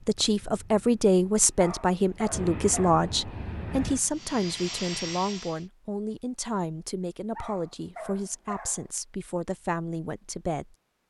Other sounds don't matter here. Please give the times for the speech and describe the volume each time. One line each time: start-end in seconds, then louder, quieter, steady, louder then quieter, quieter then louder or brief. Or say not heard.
0.1-10.8 quieter.